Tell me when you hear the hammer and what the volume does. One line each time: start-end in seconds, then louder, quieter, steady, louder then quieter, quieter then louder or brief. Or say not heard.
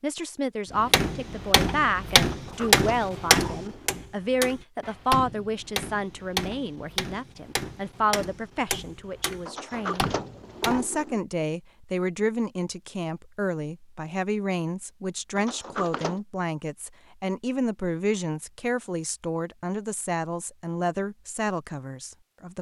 0.8-10.8 quieter.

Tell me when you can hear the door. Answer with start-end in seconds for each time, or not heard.
2.1-4.0, 9.4-11.2, 15.3-16.2.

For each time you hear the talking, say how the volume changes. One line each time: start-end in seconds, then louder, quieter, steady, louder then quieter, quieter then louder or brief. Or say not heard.
0.0-22.5 steady.